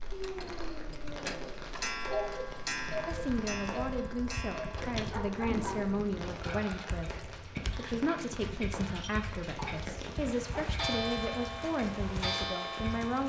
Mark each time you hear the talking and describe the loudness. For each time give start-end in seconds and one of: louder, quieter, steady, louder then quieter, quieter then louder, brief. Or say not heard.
3.0-13.2 steady.